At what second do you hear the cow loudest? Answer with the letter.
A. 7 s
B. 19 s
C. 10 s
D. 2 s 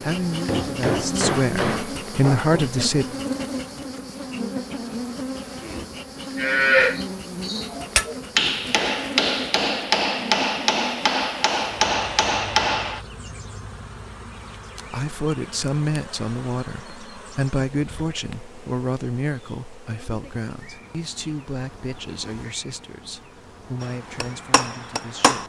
A.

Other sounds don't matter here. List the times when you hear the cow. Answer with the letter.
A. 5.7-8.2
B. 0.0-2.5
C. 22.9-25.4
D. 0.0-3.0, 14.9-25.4
A.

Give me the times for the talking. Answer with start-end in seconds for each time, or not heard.
0.0-3.0, 14.9-25.4.